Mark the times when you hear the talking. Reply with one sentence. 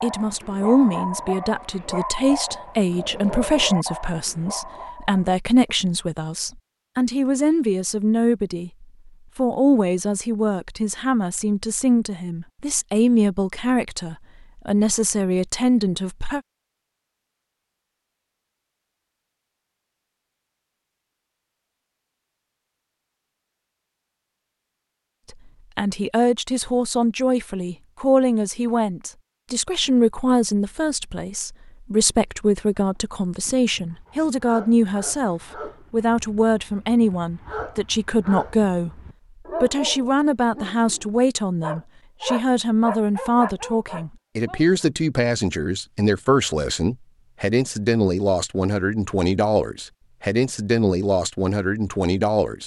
You can hear the talking from 0.0 to 16.4 s, from 25.3 to 39.0 s and from 39.6 to 52.6 s.